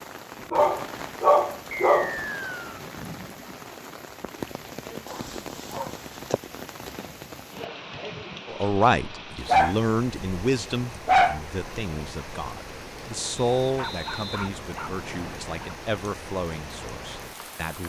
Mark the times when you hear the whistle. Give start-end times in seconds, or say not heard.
1.7-2.8, 13.3-15.4.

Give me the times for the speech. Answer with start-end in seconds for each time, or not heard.
8.4-17.8.